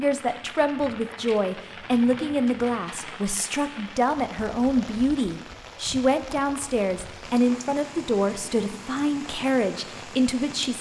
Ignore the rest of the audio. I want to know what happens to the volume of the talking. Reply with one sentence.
The volume of the talking stays about the same.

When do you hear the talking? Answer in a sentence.
The talking can be heard from 0.0 to 10.7 s.